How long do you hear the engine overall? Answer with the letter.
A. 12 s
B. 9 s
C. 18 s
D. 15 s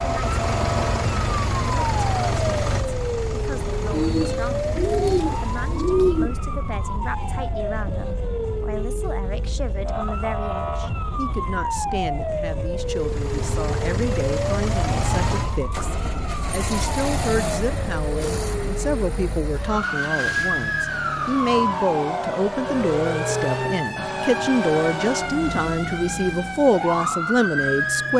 D.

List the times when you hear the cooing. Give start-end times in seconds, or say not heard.
3.9-6.3.